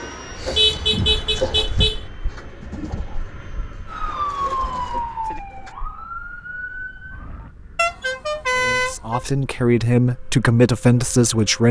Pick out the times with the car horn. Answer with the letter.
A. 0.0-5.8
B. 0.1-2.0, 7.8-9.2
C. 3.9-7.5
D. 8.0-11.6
B.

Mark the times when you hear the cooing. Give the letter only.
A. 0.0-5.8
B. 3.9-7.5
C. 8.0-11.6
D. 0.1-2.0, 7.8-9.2
A.